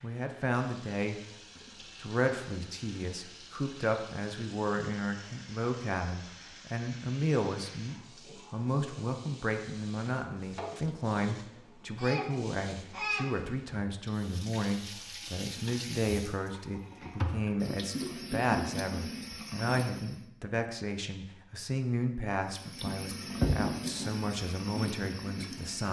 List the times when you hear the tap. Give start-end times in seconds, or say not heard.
0.0-20.2, 22.4-25.8.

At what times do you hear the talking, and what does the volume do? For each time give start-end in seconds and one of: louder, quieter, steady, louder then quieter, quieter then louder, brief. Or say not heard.
0.0-25.8 steady.